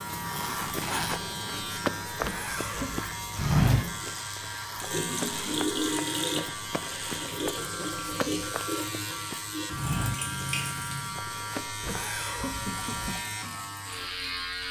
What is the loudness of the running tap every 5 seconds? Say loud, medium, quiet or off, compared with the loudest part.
medium, loud, medium.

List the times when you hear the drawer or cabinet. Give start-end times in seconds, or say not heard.
not heard.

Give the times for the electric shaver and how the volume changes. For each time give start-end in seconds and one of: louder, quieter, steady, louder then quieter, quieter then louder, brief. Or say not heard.
0.0-14.6 steady.